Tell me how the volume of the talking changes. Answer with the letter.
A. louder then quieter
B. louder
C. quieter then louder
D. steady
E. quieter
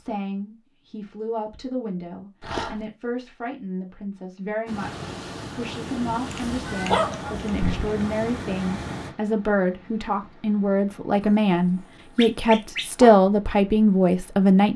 B.